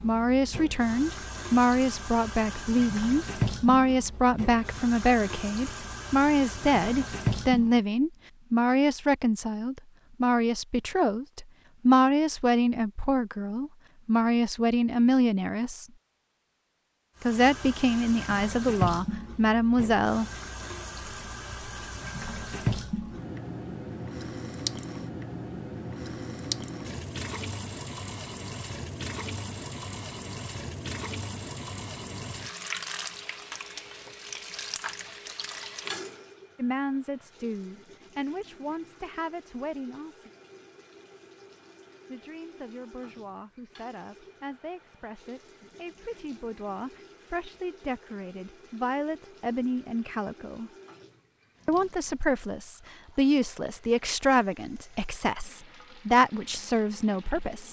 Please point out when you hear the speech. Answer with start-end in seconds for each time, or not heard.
0.0-15.8, 17.2-20.2, 36.5-40.3, 42.0-50.7, 51.6-57.6.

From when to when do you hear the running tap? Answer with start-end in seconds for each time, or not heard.
0.0-7.8, 17.1-57.6.